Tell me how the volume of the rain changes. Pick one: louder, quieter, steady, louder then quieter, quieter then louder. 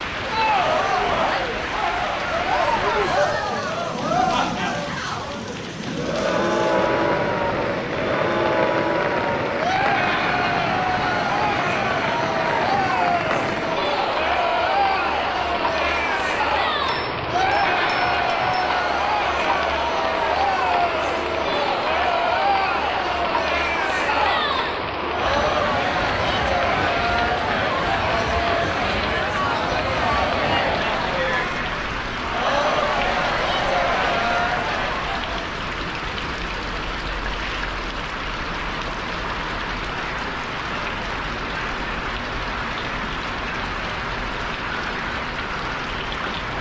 steady.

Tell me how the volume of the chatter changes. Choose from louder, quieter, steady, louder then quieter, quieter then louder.
steady.